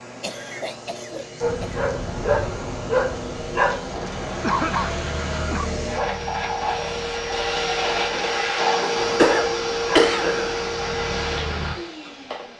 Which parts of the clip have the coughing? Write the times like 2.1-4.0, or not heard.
0.2-1.8, 4.4-5.8, 9.0-10.7.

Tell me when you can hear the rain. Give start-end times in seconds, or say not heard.
not heard.